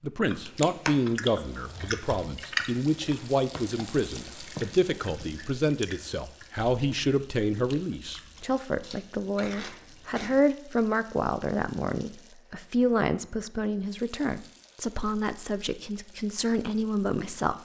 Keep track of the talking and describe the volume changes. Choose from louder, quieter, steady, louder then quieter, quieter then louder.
steady.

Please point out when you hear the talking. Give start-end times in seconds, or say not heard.
0.0-17.6.